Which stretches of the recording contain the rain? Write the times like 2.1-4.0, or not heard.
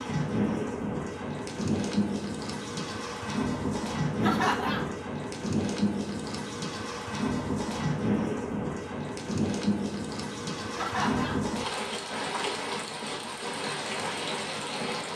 0.0-15.1.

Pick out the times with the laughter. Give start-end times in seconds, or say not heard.
4.2-5.0, 10.8-11.5.